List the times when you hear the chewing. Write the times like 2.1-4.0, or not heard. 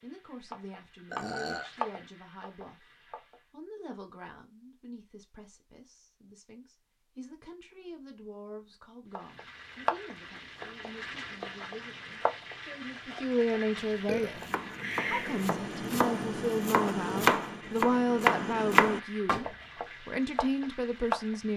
not heard.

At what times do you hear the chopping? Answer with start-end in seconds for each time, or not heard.
14.2-19.4.